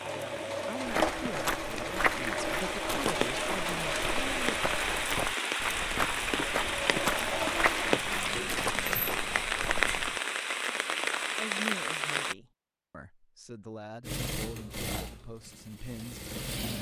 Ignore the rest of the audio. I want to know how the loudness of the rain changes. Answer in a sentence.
The volume of the rain goes up.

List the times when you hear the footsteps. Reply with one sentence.
You can hear the footsteps from 0.8 to 10.2 s.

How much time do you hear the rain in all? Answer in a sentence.
You can hear the rain for 12 seconds altogether.